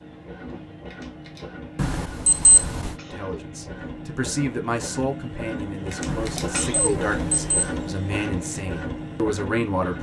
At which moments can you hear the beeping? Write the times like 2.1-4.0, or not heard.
1.8-3.0, 6.0-7.8.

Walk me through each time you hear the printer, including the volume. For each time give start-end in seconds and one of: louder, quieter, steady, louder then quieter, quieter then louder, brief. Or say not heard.
0.0-9.9 louder.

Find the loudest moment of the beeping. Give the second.
2 s.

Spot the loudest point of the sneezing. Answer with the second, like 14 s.
7 s.